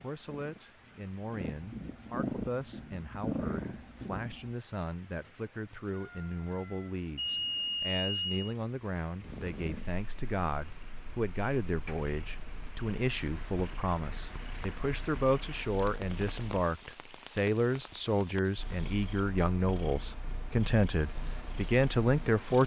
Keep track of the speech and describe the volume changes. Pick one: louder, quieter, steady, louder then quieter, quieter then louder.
louder.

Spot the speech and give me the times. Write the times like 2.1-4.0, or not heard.
0.0-22.6.